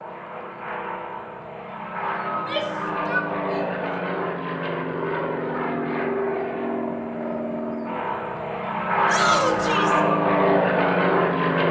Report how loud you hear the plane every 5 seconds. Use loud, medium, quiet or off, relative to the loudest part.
medium, medium, loud.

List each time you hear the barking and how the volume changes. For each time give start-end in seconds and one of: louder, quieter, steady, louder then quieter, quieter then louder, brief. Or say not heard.
not heard.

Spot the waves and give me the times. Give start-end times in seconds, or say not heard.
not heard.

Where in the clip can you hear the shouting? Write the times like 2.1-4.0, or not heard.
2.3-3.7, 9.1-10.0.